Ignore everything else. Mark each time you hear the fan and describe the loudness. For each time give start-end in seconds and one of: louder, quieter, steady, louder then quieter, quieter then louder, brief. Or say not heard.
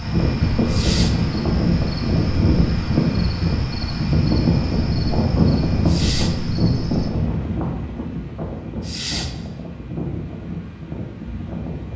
0.0-11.9 quieter.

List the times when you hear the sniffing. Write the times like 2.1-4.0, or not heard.
0.7-1.1, 5.8-6.3, 8.8-9.3.